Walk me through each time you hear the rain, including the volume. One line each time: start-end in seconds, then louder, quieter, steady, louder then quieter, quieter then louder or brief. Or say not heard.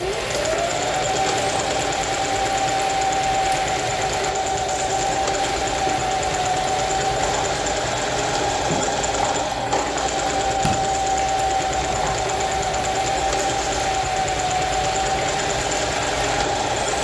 0.0-16.9 steady.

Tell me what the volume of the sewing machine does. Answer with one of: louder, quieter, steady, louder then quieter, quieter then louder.
steady.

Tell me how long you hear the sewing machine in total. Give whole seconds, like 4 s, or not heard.
17 s.